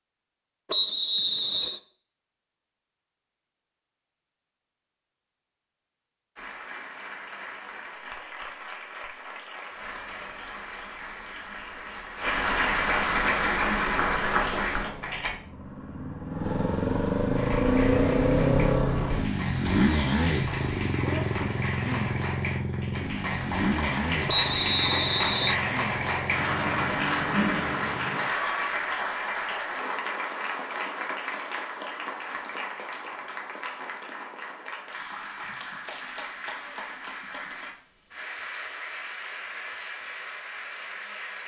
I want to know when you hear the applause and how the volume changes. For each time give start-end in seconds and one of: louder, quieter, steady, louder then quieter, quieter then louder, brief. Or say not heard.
6.3-15.3 louder
17.3-41.4 louder then quieter.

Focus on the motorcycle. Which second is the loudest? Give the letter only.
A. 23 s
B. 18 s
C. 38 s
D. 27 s
B.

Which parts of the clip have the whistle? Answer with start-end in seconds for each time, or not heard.
0.7-1.8, 24.2-25.6.